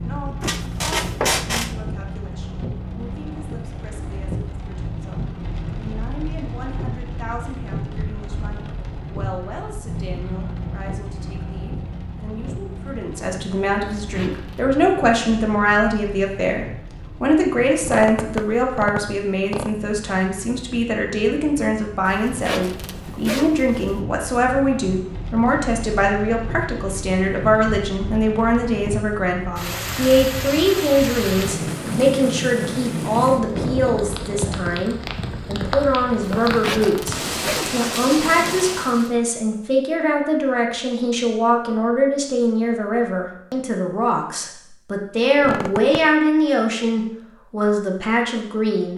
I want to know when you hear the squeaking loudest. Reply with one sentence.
The volume of the squeaking peaks at 1 second.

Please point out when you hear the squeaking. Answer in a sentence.
You can hear the squeaking from 0.4 to 1.8 s, from 17.8 to 19.8 s and from 45.4 to 46.0 s.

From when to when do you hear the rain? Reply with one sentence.
The rain can be heard from 0.0 to 39.1 s.